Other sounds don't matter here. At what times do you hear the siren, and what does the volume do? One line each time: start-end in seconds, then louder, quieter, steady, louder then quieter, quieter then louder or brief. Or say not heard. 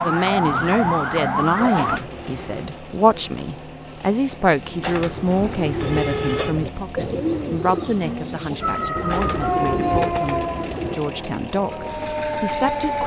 0.0-2.0 brief
8.6-13.0 quieter then louder.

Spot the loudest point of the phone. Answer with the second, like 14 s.
6 s.